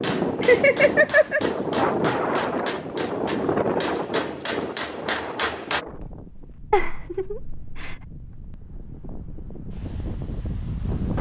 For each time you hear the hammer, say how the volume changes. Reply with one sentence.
The hammer can be heard from 0.0 to 5.8 s, getting louder.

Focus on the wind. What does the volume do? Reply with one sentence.
The volume of the wind goes down, then up.